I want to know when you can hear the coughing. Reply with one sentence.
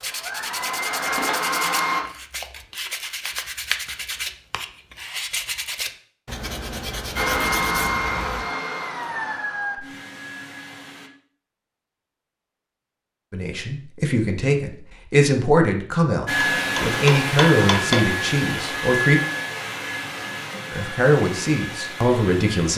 You can't hear the coughing here.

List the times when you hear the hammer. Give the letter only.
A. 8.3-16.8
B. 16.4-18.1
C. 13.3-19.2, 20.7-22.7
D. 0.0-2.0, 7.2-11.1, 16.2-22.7
B.